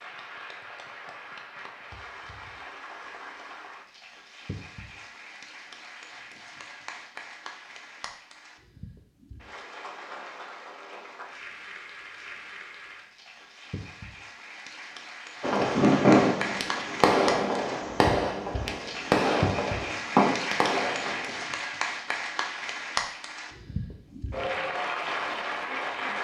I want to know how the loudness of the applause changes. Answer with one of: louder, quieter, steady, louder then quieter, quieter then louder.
louder.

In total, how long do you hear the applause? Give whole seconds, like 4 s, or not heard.
26 s.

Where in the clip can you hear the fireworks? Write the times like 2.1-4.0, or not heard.
15.4-21.4.